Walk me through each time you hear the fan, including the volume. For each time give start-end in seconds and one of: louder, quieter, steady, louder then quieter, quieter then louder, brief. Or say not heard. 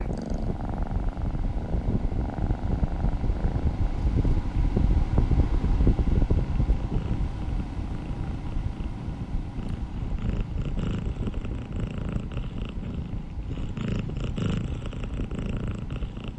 0.0-16.3 louder then quieter.